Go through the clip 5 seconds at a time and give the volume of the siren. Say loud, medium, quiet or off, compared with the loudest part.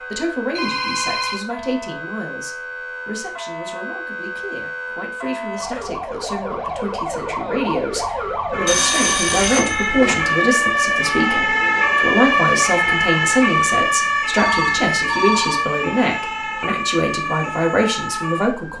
quiet, medium, loud, medium.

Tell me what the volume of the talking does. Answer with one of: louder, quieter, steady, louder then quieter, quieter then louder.
louder.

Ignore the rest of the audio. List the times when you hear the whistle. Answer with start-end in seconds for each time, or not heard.
not heard.